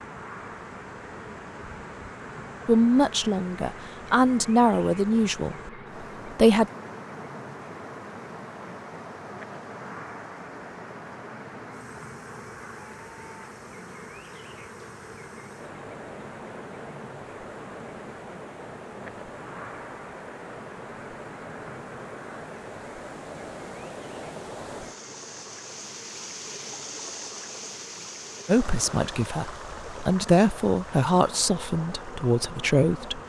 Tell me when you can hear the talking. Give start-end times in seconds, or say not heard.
2.6-5.5, 6.2-6.7, 28.4-33.2.